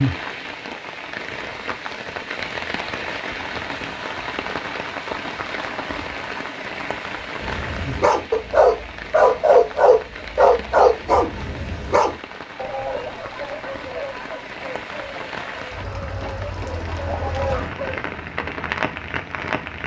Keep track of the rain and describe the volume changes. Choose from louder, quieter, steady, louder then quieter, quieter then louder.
quieter then louder.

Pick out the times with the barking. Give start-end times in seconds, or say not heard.
7.4-17.9.